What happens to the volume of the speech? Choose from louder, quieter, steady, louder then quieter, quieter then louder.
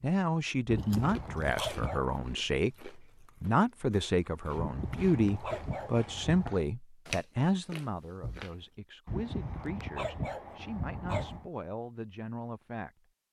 quieter.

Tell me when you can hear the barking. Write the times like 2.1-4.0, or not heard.
0.7-2.2, 4.5-6.5, 9.1-11.5.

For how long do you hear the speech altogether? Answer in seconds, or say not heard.
13 s.